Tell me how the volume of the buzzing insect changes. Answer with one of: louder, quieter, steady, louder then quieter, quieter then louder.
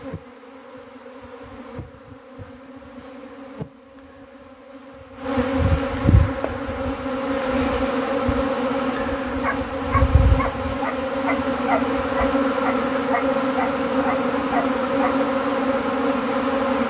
louder.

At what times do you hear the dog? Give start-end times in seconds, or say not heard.
9.3-15.2.